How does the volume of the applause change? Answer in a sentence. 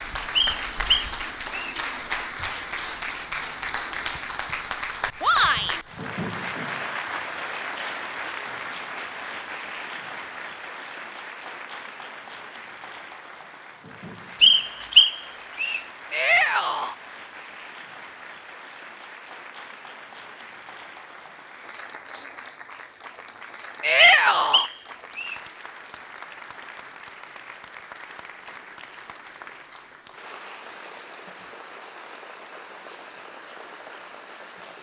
The volume of the applause goes down.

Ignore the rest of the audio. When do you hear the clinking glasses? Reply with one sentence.
The clinking glasses can't be heard in this clip.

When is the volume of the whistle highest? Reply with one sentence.
The loudest moment of the whistle is at 15 seconds.